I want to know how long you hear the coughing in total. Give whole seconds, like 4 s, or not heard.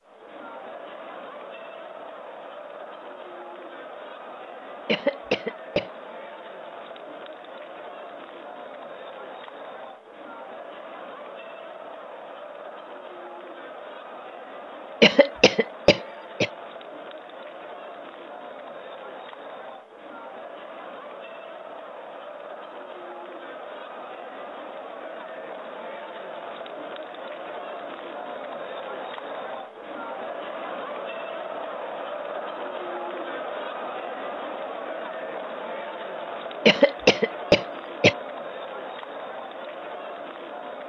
4 s.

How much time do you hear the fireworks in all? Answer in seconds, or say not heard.
not heard.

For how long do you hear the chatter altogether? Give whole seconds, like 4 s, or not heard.
41 s.